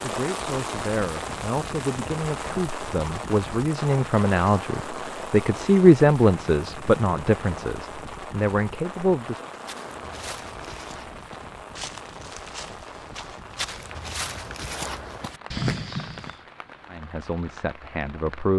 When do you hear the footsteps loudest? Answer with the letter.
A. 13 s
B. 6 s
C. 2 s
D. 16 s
D.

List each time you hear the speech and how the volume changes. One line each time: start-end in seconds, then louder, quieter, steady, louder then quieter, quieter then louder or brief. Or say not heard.
0.0-9.4 louder then quieter
16.9-18.5 brief.